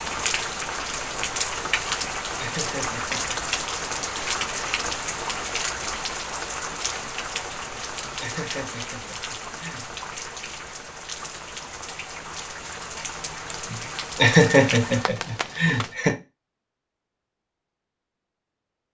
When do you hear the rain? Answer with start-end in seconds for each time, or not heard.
0.0-15.9.